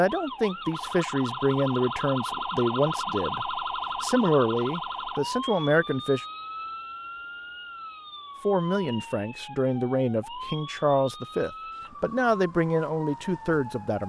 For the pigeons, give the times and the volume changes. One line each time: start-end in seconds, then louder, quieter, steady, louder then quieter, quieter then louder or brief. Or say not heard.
not heard.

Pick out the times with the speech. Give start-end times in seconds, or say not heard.
0.0-6.2, 8.4-14.0.